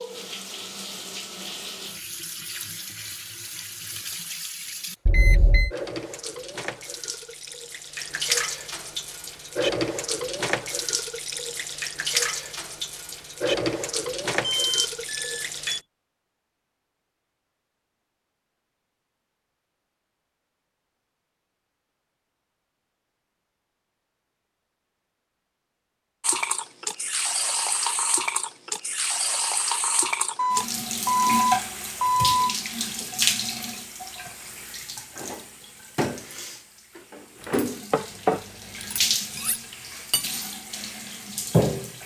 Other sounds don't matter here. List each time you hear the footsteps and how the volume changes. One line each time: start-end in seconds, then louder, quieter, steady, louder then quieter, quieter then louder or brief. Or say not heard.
not heard.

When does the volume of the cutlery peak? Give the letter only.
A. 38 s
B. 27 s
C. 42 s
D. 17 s
A.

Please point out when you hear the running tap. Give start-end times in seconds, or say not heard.
0.0-15.8, 26.2-42.0.